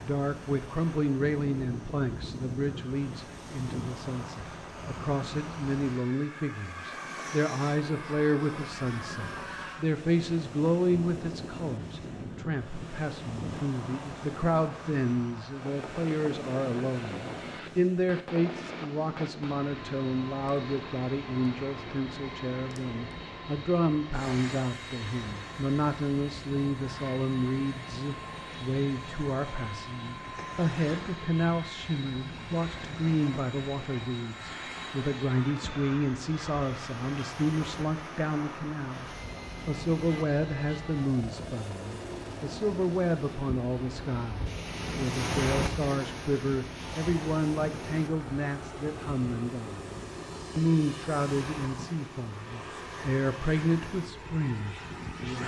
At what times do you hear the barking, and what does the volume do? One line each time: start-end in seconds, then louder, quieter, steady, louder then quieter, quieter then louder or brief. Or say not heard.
not heard.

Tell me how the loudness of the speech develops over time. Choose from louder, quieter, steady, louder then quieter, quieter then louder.
steady.